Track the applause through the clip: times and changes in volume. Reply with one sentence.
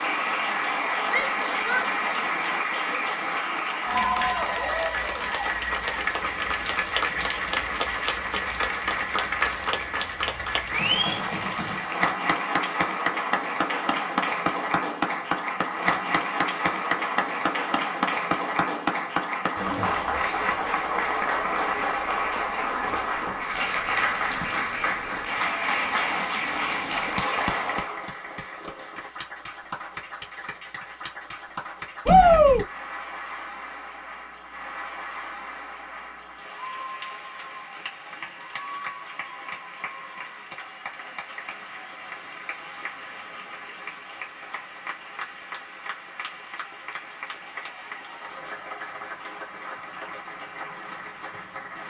You can hear the applause from 0.0 to 51.8 s, getting quieter.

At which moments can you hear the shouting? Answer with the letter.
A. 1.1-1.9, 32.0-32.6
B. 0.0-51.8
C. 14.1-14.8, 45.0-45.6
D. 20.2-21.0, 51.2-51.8
A.